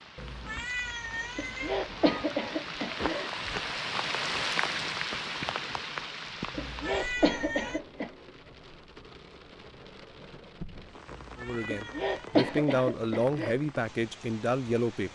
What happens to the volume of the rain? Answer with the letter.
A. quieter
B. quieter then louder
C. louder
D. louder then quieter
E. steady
D.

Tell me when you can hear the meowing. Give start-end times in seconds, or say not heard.
0.1-2.4, 6.5-7.8, 11.1-12.4.